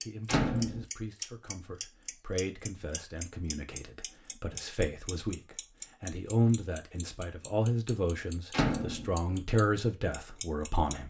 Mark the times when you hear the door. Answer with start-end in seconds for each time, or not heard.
0.2-0.8, 8.5-9.1.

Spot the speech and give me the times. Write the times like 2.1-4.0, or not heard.
0.0-11.0.